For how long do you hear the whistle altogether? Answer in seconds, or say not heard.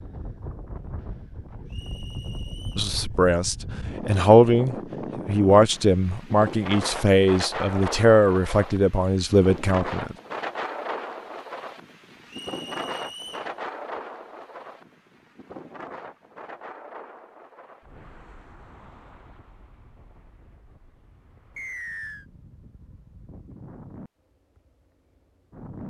3 s.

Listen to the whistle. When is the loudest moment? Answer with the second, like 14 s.
22 s.